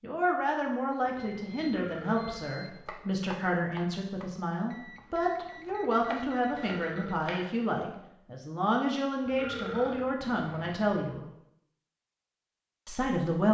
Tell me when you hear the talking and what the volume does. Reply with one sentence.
You can hear the talking from 0.0 to 11.2 s, at a steady volume; and briefly from 12.8 to 13.4 s.